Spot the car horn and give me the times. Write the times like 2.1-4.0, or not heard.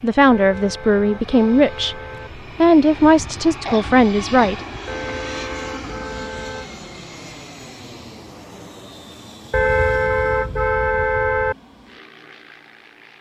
0.2-2.3, 4.8-6.7, 9.5-11.6.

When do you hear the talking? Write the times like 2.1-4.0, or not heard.
0.0-2.0, 2.6-4.5.